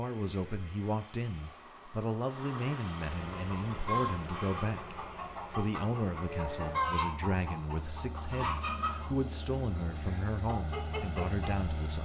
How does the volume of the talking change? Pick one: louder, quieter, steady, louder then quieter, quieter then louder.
steady.